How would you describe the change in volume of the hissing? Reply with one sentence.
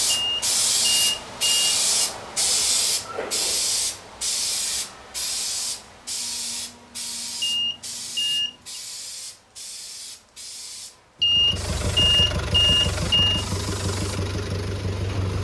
The loudness of the hissing goes down.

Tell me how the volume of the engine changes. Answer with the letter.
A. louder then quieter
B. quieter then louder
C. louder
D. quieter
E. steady
E.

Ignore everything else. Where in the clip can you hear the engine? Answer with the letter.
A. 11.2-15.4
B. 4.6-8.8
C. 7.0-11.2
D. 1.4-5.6
A.